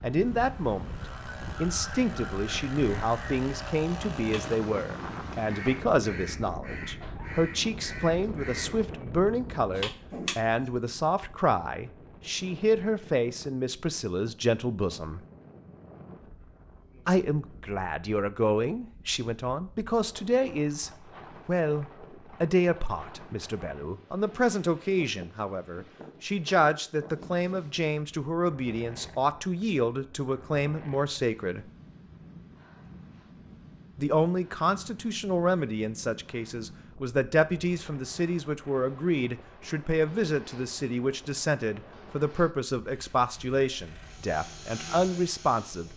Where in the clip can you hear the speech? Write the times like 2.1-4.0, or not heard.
0.0-15.2, 17.1-31.6, 34.0-45.9.